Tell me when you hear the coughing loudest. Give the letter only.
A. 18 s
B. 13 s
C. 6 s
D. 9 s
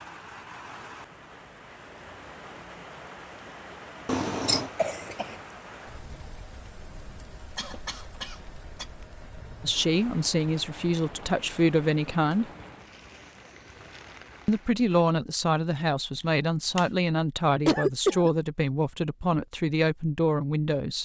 A.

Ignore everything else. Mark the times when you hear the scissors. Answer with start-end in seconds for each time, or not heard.
4.0-4.7, 16.2-16.9.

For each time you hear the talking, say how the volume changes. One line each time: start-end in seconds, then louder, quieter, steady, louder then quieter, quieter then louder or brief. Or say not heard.
9.6-12.5 brief
14.4-20.9 steady.